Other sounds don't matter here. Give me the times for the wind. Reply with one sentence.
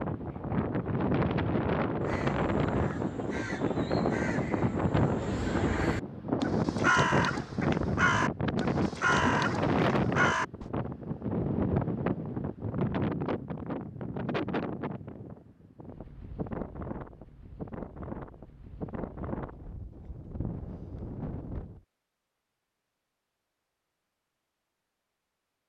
The wind can be heard from 0.0 to 21.8 s.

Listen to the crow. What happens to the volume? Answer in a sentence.
The volume of the crow goes up.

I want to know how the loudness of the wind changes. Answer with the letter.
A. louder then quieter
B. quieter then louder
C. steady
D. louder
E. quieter
E.